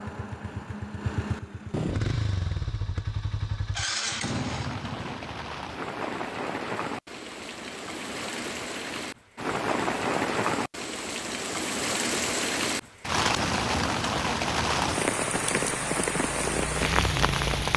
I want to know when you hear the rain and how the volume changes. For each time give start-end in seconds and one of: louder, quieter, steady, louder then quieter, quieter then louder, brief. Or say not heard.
4.2-17.7 louder.